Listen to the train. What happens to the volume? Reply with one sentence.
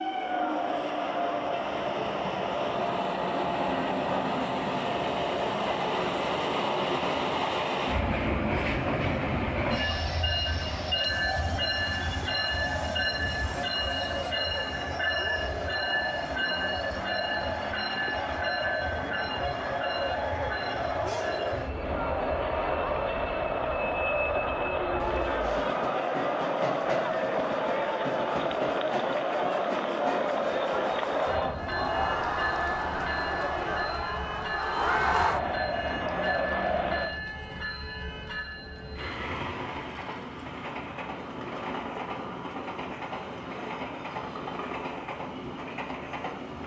The loudness of the train goes down.